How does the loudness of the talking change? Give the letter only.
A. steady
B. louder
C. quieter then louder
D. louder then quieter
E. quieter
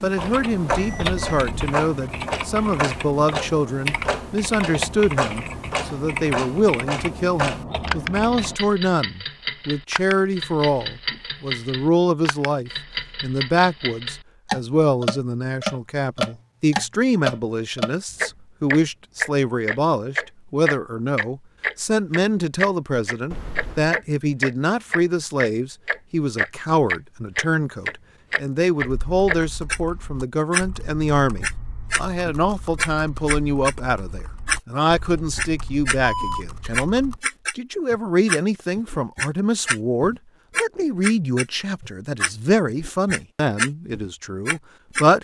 A.